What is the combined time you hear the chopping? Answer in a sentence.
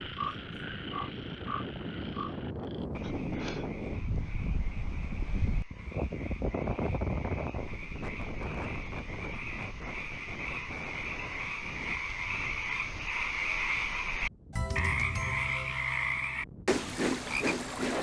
The chopping can't be heard in this clip.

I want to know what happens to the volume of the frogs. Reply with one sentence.
The loudness of the frogs goes down, then up.